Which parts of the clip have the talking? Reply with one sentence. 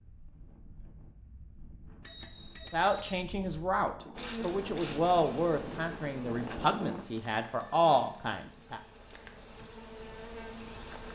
The talking can be heard from 2.7 to 8.8 s.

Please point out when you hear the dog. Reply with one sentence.
You can't hear the dog here.